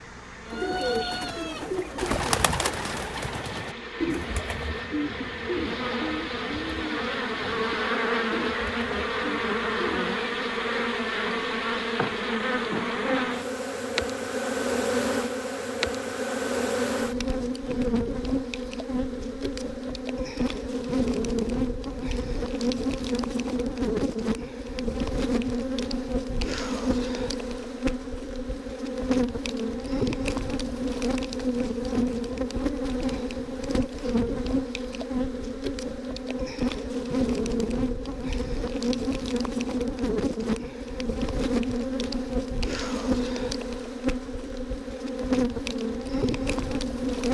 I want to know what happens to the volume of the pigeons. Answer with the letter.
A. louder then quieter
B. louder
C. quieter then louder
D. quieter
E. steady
D.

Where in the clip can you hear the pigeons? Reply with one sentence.
The pigeons can be heard from 0.5 to 10.4 s.